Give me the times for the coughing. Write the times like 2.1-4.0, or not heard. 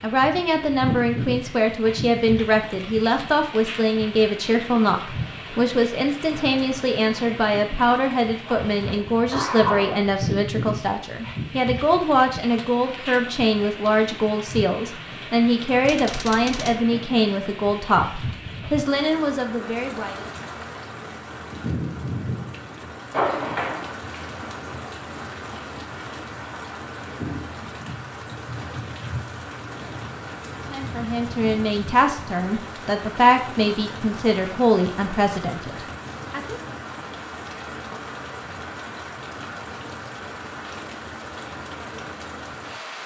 8.4-10.1, 23.1-23.9.